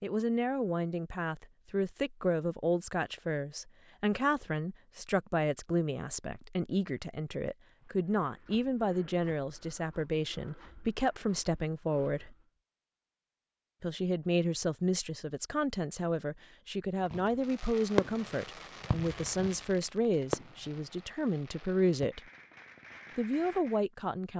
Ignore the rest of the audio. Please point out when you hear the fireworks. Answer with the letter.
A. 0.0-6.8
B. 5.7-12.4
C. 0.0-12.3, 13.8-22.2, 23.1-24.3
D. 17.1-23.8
D.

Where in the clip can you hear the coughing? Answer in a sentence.
The coughing can't be heard in this clip.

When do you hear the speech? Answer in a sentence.
You can hear the speech from 0.0 to 12.3 s, from 13.8 to 22.2 s and from 23.1 to 24.3 s.